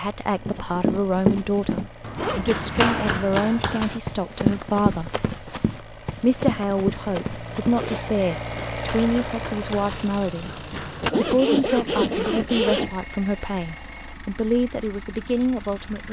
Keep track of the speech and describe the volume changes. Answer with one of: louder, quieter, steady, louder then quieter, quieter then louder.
steady.